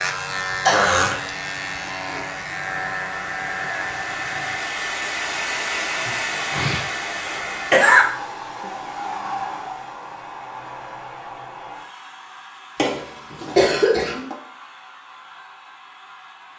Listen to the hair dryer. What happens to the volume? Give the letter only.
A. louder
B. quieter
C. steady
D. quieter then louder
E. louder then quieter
E.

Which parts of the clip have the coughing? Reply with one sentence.
You can hear the coughing from 0.7 to 1.1 s, from 6.0 to 8.1 s and from 12.8 to 14.3 s.